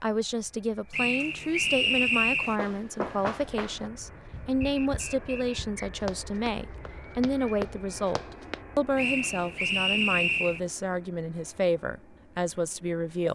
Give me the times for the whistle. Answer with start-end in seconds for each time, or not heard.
0.9-2.6, 4.6-5.9, 8.9-10.6.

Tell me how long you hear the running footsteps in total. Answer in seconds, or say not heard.
6 s.